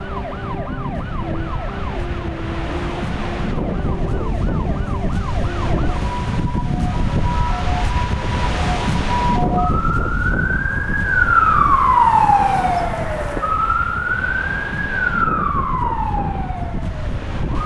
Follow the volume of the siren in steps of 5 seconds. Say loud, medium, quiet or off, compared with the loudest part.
quiet, medium, loud, medium.